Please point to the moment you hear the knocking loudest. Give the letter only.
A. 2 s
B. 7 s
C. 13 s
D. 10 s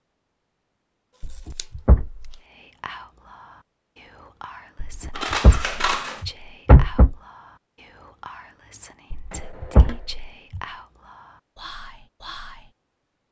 B.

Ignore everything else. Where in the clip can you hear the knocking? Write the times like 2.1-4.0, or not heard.
1.2-2.3, 4.8-7.2, 9.1-10.6.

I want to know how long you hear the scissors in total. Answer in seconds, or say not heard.
2 s.